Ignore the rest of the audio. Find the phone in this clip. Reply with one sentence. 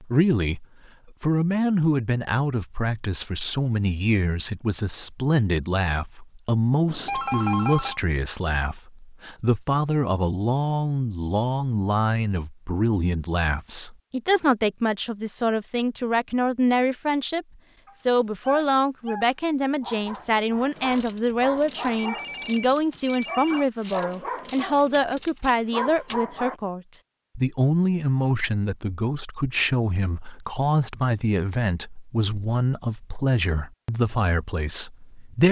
You can hear the phone from 6.8 to 8.0 s and from 21.9 to 23.7 s.